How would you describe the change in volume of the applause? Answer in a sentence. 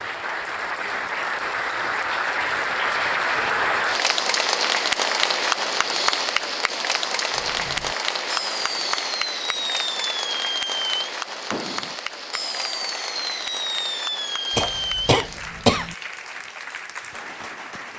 The volume of the applause goes down.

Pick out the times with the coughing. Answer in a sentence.
The coughing can be heard from 14.6 to 15.9 s.